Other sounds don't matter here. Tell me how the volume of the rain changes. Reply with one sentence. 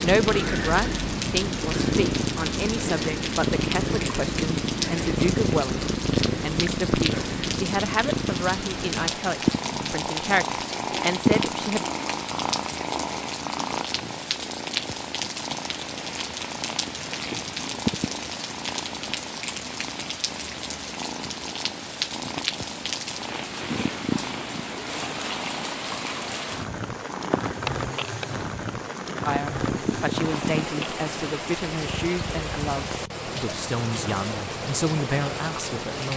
The loudness of the rain stays about the same.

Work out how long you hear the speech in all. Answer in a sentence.
The speech can be heard for 19 seconds in total.